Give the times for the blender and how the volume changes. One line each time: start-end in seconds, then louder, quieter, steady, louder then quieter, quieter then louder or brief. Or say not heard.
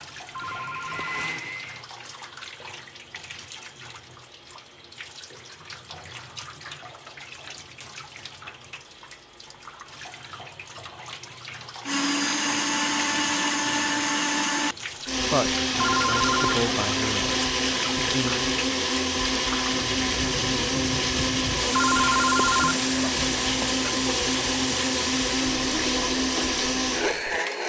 0.2-1.9 brief
11.8-27.6 steady.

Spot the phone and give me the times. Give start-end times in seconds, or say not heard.
0.3-1.3, 15.8-16.6, 21.7-23.8.